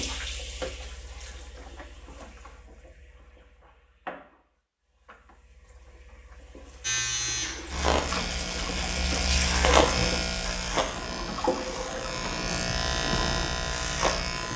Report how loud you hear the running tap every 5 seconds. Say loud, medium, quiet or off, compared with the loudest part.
medium, loud, loud.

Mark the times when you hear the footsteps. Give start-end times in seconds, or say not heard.
not heard.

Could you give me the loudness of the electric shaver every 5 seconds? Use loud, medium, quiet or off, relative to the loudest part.
off, loud, loud.